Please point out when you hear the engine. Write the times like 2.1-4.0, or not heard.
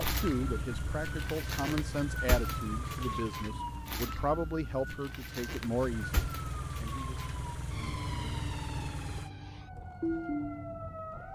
0.0-9.3.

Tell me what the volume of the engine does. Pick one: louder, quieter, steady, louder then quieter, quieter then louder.
quieter then louder.